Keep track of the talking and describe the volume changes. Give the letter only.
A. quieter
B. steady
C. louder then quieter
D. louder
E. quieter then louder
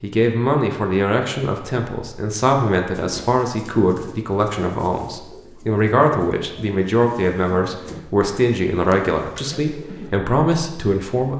B.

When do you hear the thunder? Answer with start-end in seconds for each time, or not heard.
not heard.